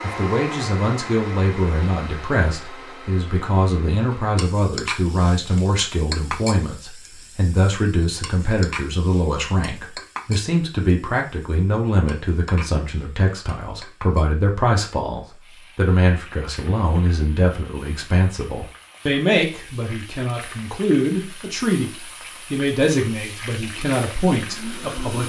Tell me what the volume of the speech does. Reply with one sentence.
The volume of the speech stays about the same.